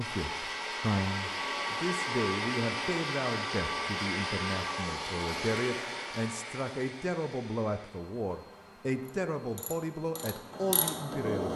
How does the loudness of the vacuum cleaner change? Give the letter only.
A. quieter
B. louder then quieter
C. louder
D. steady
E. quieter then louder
A.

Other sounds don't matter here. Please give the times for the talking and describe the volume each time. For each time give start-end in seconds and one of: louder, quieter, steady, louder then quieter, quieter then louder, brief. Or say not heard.
0.0-11.5 steady.